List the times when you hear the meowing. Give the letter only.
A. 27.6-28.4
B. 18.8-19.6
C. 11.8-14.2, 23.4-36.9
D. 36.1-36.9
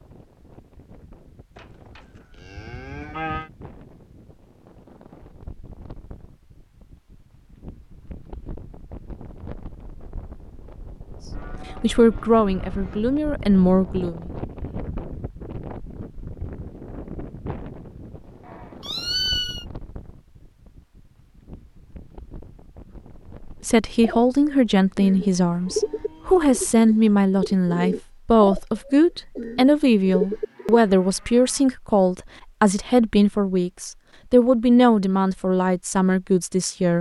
B.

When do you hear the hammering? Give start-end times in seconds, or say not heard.
not heard.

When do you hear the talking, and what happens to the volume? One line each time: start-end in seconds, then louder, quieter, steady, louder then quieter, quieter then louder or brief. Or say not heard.
11.8-14.2 brief
23.4-36.9 steady.